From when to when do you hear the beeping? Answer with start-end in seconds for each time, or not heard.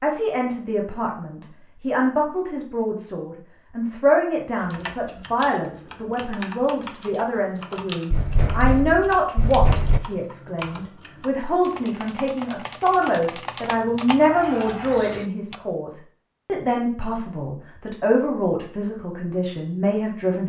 not heard.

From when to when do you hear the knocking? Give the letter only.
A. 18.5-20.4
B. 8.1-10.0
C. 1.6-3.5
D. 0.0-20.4
B.